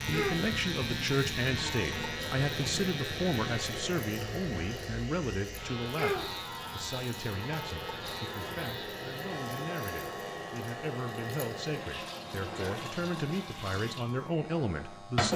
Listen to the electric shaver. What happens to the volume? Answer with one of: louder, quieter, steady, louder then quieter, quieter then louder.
quieter.